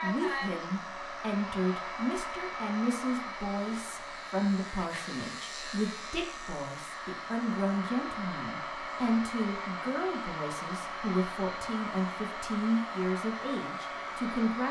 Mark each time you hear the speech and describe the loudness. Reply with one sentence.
You can hear the speech from 0.0 to 14.6 s, at a steady volume.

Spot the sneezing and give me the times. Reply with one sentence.
You can't hear the sneezing here.